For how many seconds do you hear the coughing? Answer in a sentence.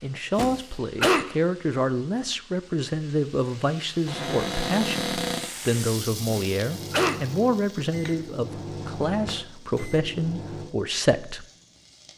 You can hear the coughing for 2 seconds altogether.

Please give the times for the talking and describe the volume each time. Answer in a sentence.
You can hear the talking from 0.0 to 11.4 s, at a steady volume.